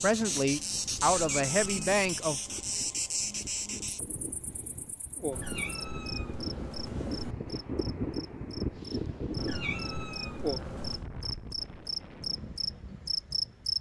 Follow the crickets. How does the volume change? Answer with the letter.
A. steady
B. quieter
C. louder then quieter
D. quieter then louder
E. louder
D.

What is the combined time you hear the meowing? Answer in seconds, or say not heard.
5 s.